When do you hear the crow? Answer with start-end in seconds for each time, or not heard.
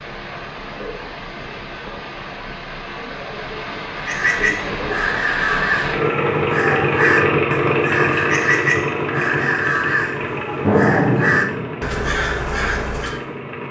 4.0-13.2.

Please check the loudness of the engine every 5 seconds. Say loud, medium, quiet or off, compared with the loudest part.
medium, loud, loud.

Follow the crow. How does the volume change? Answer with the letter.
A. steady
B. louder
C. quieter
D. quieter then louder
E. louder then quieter
A.